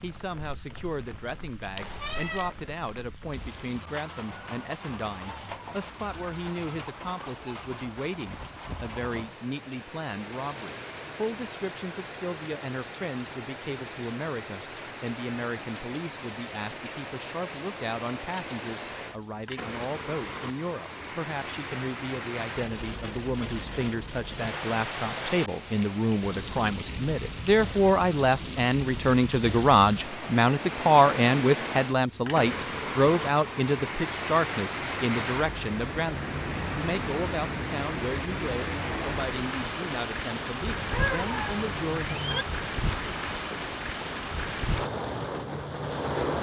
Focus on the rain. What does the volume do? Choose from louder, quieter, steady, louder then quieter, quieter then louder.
louder.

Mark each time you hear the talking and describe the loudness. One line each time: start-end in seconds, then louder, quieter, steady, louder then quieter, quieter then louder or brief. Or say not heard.
0.0-42.2 louder then quieter.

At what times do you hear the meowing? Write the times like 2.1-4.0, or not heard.
1.8-2.5, 40.6-42.5.